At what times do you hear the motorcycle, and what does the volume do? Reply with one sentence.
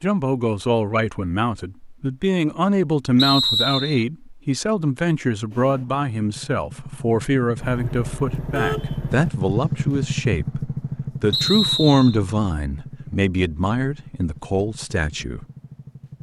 The motorcycle can be heard from 5.5 to 16.1 s, getting louder then quieter.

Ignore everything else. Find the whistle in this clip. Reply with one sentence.
The whistle can be heard from 3.1 to 4.0 s and from 11.3 to 12.2 s.